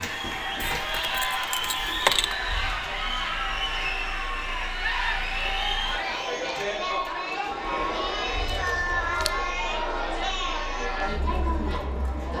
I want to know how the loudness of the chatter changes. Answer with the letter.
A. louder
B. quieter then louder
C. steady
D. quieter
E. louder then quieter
C.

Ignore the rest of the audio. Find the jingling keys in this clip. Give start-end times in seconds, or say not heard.
0.6-2.4, 8.4-9.3.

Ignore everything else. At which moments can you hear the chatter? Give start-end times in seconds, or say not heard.
0.0-12.3.